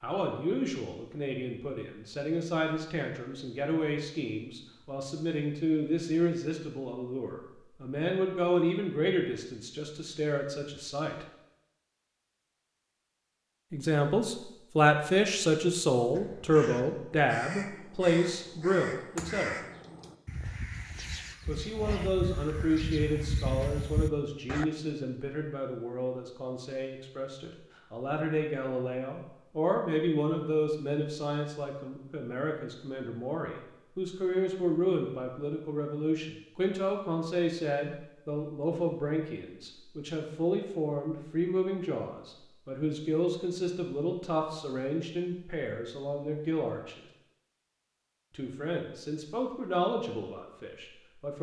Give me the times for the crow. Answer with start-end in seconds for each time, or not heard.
16.1-24.6.